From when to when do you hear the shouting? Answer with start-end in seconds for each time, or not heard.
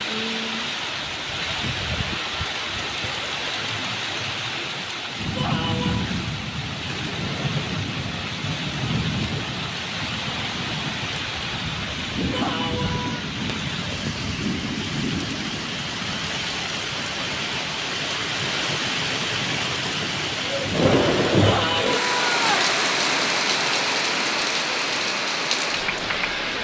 5.3-6.0, 12.3-13.3, 21.4-22.7.